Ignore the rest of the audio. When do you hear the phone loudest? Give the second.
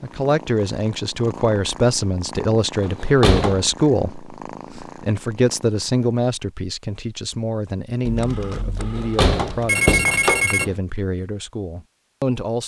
10 s.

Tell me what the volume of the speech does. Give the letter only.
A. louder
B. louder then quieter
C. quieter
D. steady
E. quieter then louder
C.